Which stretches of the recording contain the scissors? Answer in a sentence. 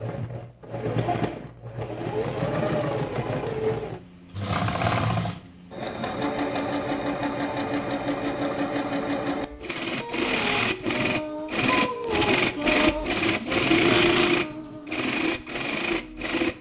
The scissors can be heard from 13.6 to 14.3 s.